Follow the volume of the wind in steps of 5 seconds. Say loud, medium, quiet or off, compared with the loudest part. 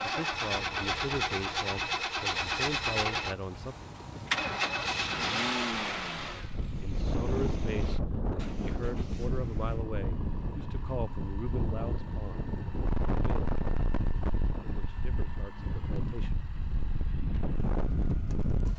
quiet, loud, loud, loud.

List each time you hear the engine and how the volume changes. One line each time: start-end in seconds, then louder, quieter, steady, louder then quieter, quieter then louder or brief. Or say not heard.
0.0-18.7 quieter.